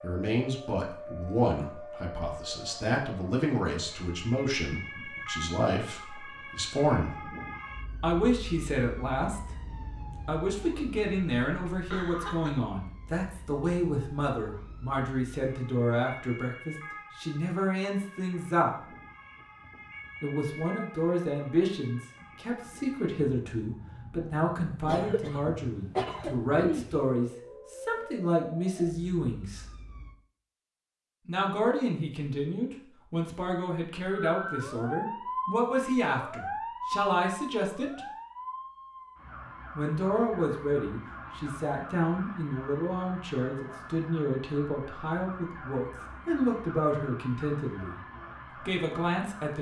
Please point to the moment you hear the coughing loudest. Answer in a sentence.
The volume of the coughing peaks at 26 seconds.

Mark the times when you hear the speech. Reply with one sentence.
You can hear the speech from 0.0 to 7.2 s, from 8.0 to 18.9 s, from 20.2 to 29.6 s, from 31.2 to 38.0 s, from 39.8 to 48.0 s and from 48.6 to 49.5 s.